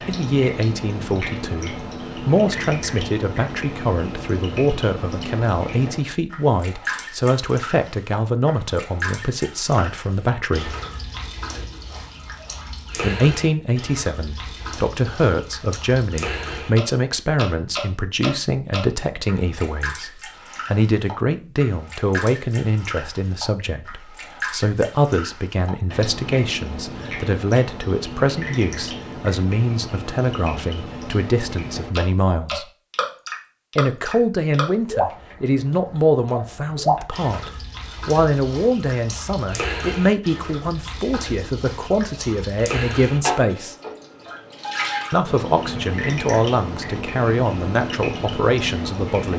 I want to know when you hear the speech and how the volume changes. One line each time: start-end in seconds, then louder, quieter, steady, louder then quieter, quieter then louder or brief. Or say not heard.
0.1-10.8 steady
12.9-32.6 steady
33.8-43.8 steady
45.1-49.3 steady.